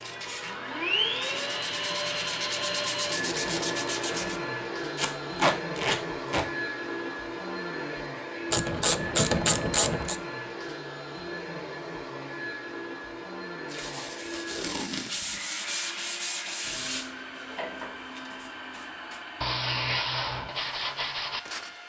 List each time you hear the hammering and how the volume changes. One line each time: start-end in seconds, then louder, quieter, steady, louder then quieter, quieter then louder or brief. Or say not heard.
not heard.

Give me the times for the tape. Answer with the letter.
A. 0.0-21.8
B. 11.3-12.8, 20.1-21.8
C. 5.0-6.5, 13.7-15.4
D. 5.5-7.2
C.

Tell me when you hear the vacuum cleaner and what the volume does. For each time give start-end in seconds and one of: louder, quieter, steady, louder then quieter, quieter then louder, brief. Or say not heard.
0.0-21.8 quieter.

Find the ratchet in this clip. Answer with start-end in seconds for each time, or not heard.
8.5-10.2.